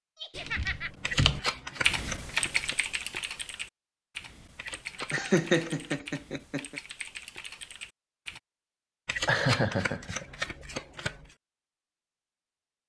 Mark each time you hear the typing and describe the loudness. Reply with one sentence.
You can hear the typing from 0.3 to 8.4 s, getting quieter.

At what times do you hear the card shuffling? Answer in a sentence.
You can hear the card shuffling from 1.0 to 2.8 s, from 4.5 to 6.0 s and from 9.1 to 11.3 s.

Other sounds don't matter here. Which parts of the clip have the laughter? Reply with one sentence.
You can hear the laughter from 0.1 to 0.9 s, from 5.0 to 6.8 s and from 9.2 to 10.4 s.